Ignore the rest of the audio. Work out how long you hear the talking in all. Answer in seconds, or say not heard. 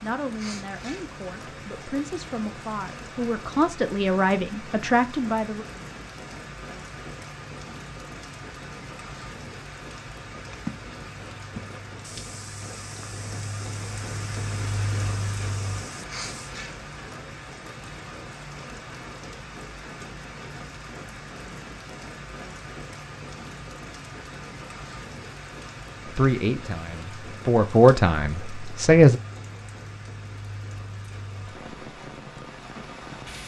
9 s.